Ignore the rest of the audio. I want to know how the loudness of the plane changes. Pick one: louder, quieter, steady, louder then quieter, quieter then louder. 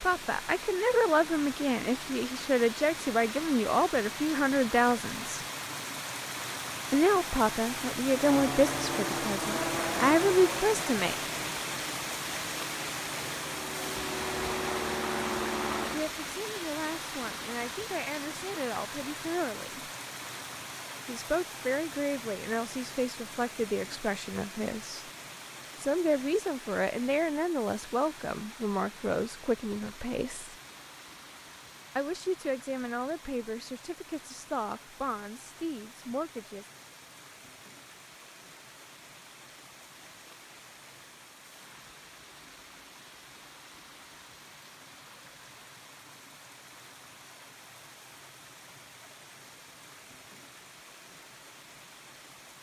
quieter then louder.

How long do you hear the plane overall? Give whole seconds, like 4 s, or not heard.
8 s.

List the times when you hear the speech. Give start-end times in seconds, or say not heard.
0.0-5.4, 6.9-11.2, 15.9-19.9, 21.1-25.1, 25.8-30.6, 31.9-36.6.